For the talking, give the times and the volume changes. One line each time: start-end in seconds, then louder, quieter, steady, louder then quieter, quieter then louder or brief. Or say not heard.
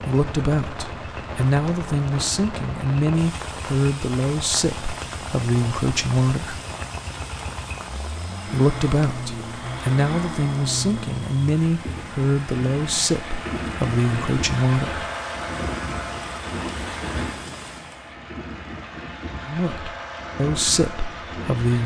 0.0-6.5 steady
8.4-15.1 steady
19.4-21.8 brief.